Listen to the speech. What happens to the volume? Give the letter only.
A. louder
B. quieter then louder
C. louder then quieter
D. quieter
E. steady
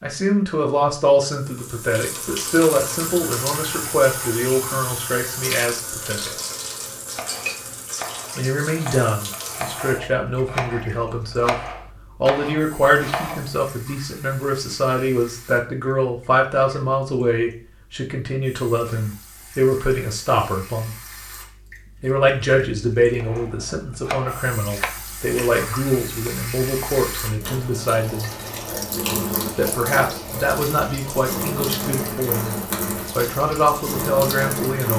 E.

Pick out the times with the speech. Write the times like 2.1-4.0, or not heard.
0.0-6.3, 8.3-11.6, 12.2-20.9, 22.0-28.3, 29.6-34.9.